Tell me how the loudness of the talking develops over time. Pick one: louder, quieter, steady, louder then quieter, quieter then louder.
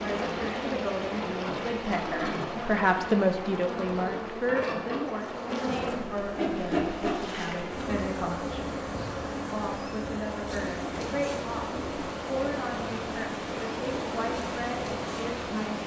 louder then quieter.